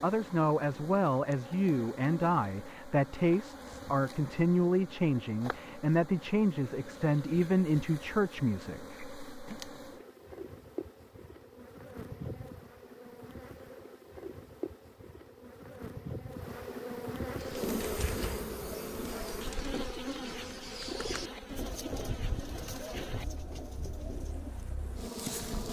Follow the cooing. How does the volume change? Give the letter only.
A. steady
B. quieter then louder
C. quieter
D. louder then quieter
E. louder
D.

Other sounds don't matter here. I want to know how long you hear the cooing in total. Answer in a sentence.
You can hear the cooing for 8 seconds altogether.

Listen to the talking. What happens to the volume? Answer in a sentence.
The volume of the talking stays about the same.